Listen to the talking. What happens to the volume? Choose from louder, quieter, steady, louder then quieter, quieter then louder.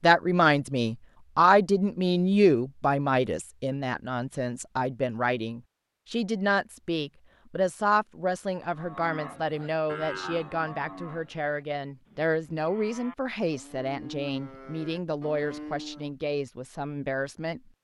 quieter.